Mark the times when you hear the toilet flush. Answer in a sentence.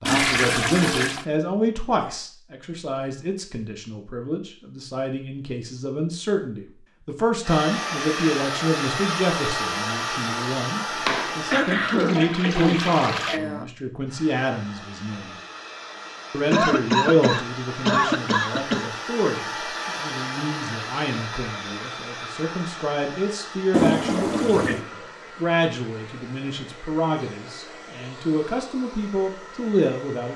The toilet flush can be heard from 0.1 to 1.2 s, from 11.1 to 13.4 s and from 23.7 to 24.9 s.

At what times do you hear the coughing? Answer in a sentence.
You can hear the coughing from 11.5 to 13.7 s and from 16.5 to 18.9 s.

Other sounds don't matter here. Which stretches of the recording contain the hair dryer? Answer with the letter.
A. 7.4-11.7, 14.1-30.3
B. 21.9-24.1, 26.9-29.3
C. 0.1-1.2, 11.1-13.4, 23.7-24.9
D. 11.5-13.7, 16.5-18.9
A.